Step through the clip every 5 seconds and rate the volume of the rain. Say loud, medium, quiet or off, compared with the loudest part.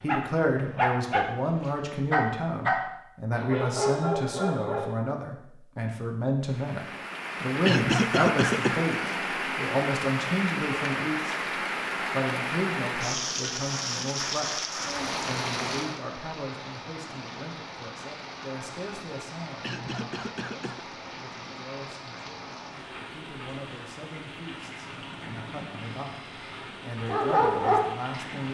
off, loud, loud, medium, medium, medium.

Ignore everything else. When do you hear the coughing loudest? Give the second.
8 s.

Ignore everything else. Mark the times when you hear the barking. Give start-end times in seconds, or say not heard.
0.0-5.0, 26.0-28.4.